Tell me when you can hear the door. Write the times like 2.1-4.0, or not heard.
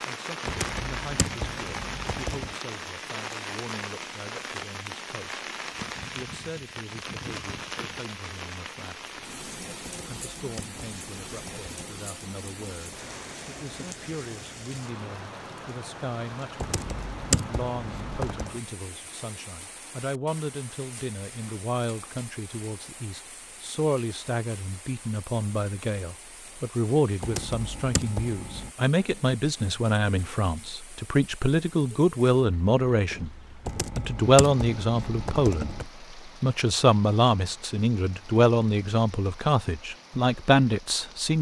33.0-33.5.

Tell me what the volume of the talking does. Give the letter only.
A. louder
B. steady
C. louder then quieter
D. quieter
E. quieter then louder
A.